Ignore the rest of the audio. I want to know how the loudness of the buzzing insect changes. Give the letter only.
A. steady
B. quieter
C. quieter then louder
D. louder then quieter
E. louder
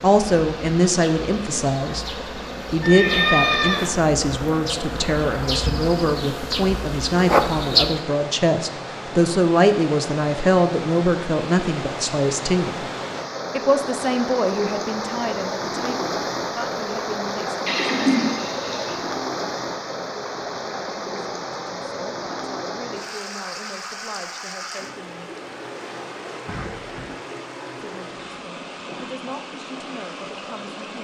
E.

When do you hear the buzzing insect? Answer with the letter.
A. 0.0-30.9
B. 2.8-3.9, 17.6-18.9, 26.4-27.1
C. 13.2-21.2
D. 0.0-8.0
D.